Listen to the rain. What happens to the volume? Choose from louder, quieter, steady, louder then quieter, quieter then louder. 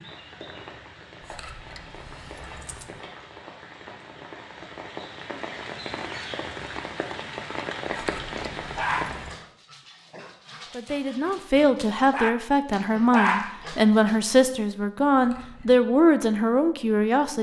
louder.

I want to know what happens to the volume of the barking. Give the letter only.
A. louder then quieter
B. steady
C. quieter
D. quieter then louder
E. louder
D.